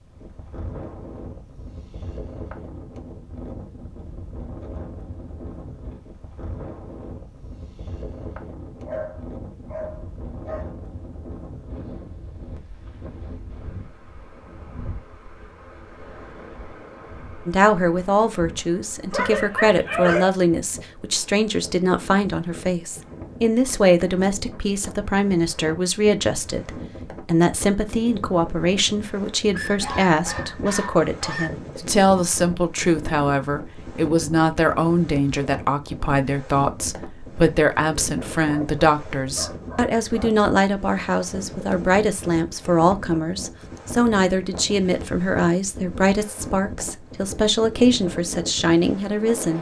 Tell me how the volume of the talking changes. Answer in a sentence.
The loudness of the talking stays about the same.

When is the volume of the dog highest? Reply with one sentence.
The volume of the dog peaks at 20 seconds.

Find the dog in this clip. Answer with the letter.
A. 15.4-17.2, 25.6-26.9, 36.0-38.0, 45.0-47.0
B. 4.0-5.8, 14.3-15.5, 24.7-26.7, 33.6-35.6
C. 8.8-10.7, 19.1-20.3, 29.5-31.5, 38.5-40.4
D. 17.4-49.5
C.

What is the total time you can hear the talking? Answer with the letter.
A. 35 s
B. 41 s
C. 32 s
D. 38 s
C.